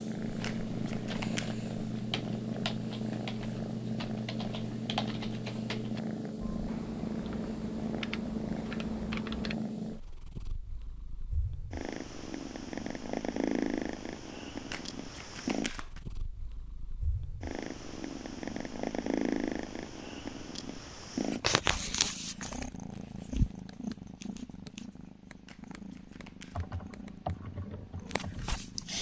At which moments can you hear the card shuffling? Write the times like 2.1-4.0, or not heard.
0.4-1.6, 14.7-16.0, 25.4-26.8.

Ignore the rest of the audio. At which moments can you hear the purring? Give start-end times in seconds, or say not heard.
0.0-28.9.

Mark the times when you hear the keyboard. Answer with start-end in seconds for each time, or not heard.
0.1-9.6, 26.5-28.9.